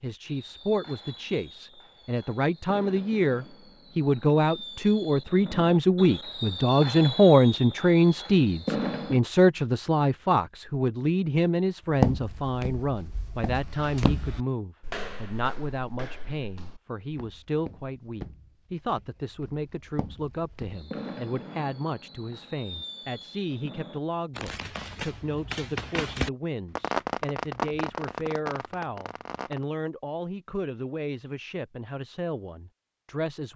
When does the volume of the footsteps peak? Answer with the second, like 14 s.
12 s.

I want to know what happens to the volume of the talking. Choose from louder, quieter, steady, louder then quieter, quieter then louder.
quieter.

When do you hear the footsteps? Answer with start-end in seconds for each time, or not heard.
11.9-20.8.